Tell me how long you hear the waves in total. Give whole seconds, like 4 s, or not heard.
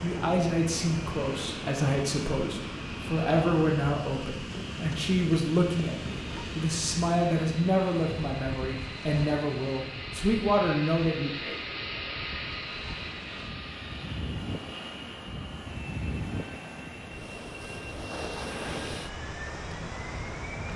21 s.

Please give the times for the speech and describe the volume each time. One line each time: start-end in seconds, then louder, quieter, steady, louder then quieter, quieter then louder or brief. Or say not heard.
0.0-11.6 steady.